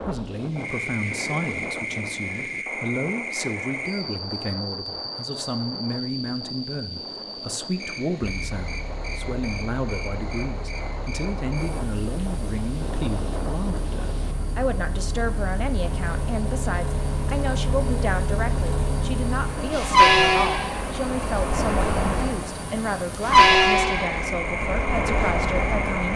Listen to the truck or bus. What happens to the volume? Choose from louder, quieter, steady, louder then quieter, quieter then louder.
louder.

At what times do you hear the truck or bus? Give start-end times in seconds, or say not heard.
8.2-26.1.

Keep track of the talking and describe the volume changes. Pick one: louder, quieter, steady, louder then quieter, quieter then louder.
steady.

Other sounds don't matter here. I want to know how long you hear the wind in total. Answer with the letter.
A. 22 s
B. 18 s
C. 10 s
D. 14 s
D.